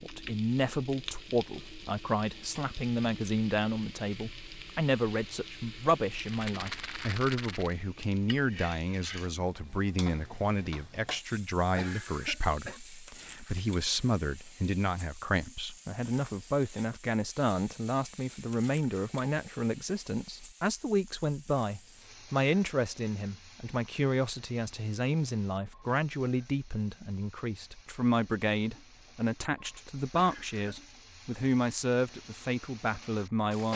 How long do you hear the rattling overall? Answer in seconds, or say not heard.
2 s.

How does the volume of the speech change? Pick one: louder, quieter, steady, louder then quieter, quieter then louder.
steady.